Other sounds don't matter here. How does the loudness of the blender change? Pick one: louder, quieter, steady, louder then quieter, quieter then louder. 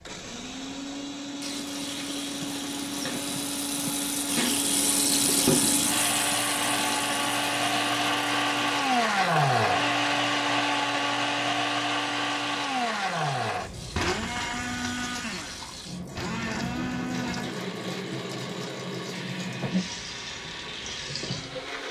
louder then quieter.